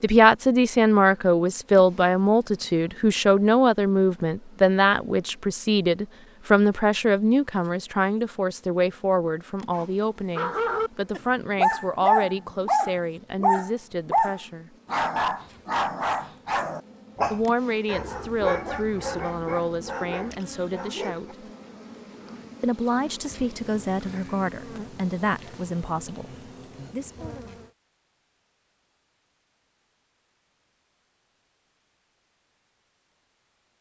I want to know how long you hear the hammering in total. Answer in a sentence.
You can't hear the hammering here.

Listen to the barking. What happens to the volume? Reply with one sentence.
The volume of the barking goes down.